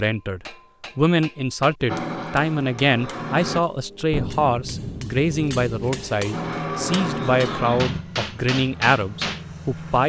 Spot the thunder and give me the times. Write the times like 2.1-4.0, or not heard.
4.1-6.1.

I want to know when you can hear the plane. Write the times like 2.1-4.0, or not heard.
1.9-3.6, 6.3-10.0.